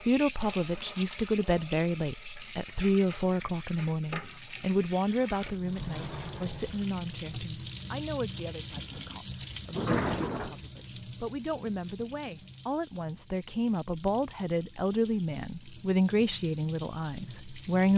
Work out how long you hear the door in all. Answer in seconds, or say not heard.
3 s.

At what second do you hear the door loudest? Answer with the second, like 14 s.
10 s.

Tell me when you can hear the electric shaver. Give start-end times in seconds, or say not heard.
not heard.